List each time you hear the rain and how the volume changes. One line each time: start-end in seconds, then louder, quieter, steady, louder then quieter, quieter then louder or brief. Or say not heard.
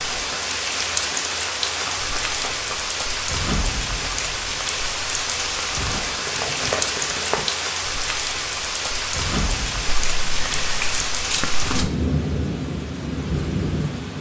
0.0-14.1 steady.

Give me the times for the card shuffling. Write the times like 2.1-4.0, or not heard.
0.2-3.0, 6.0-7.5, 9.8-11.9.